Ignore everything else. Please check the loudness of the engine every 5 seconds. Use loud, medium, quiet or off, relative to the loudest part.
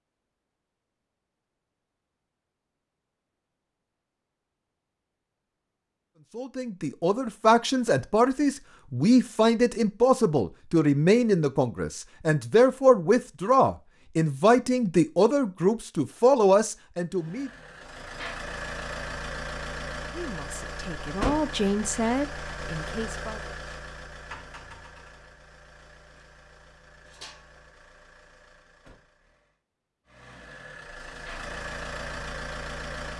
off, off, off, loud, loud, quiet, loud.